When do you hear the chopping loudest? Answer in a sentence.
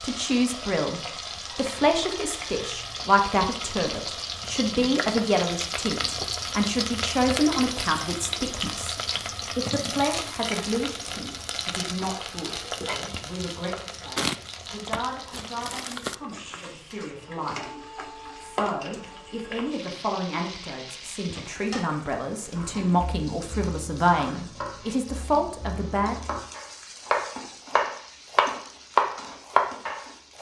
The volume of the chopping peaks at 29 seconds.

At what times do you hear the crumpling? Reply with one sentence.
The crumpling can be heard from 14.2 to 16.1 s.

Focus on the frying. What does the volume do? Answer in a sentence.
The volume of the frying goes down.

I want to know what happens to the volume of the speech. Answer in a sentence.
The loudness of the speech goes down, then up.